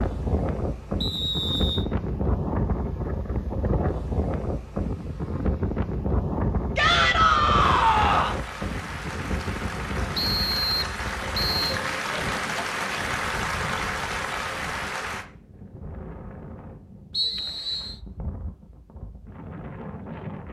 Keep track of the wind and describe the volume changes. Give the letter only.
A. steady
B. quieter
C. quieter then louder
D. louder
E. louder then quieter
B.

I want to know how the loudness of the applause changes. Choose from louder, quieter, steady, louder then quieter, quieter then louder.
louder.